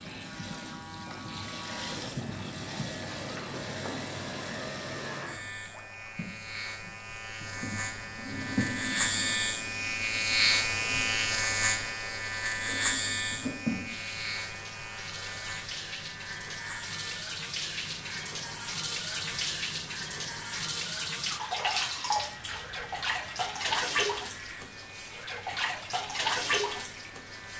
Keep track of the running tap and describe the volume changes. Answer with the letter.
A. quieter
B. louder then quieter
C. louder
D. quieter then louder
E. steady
C.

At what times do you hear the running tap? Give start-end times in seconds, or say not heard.
0.0-27.5.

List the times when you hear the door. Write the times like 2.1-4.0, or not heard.
not heard.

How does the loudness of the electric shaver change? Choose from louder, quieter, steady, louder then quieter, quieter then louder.
louder then quieter.